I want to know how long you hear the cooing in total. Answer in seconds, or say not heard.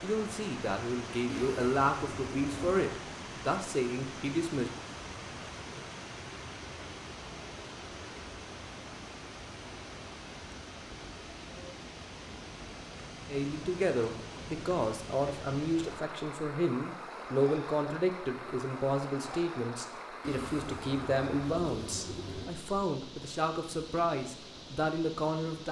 4 s.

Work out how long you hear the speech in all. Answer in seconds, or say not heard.
17 s.